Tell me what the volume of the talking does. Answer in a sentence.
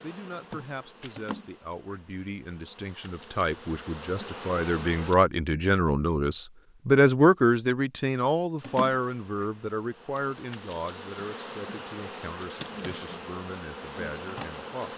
The volume of the talking goes up, then down.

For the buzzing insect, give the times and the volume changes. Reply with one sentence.
You can hear the buzzing insect from 0.0 to 5.2 s, getting quieter then louder; and from 8.6 to 14.9 s, getting louder.